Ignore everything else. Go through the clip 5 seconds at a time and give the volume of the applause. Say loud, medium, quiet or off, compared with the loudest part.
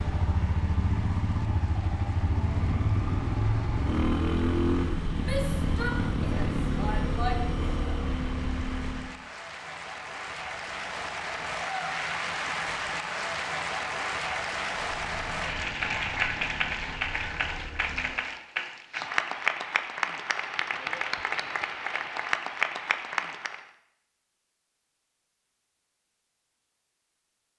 quiet, quiet, loud, loud, loud, off.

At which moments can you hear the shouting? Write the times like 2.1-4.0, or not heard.
5.2-7.4.